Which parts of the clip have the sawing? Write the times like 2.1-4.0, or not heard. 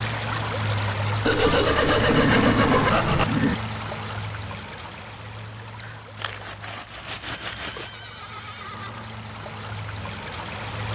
1.2-3.2, 6.2-7.9.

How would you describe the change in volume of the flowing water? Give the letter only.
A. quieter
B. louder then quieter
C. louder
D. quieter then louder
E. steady
D.